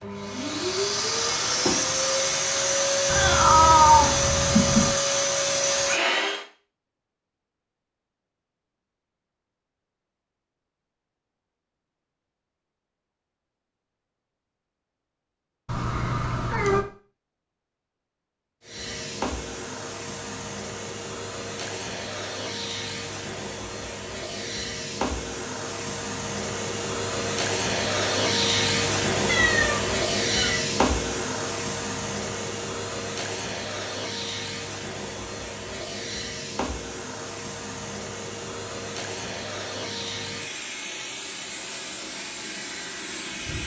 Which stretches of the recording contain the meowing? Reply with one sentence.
The meowing can be heard from 3.0 to 5.0 s, from 15.7 to 16.9 s and from 29.2 to 30.6 s.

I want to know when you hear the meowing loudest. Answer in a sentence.
The loudest moment of the meowing is at 4 seconds.